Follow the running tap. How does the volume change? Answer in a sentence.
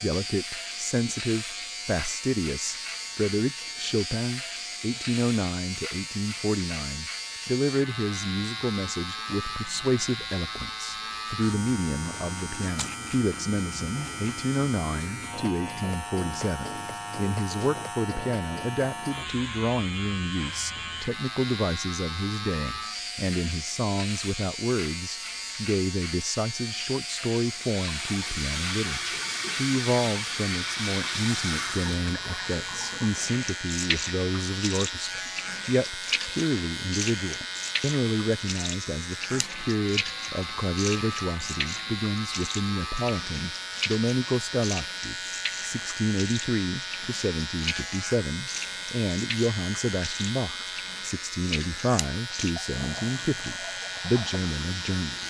The loudness of the running tap goes down.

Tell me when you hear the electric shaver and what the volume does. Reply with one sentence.
You can hear the electric shaver from 0.0 to 55.2 s, at a steady volume.